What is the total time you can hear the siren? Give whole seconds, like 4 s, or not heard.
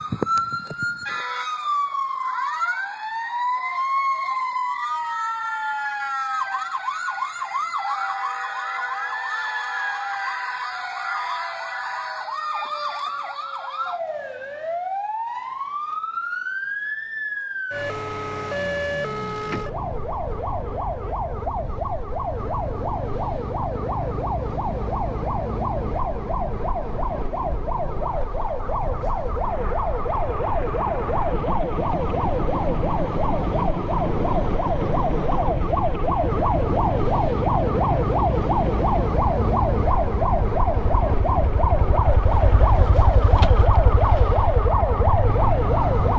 46 s.